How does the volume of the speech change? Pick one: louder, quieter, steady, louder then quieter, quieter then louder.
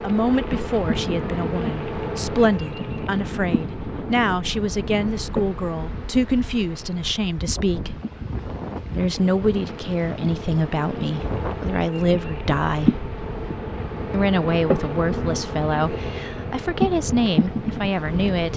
steady.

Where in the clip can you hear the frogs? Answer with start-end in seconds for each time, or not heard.
not heard.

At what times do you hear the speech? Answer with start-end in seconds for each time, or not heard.
0.0-8.0, 8.9-13.1, 14.1-18.5.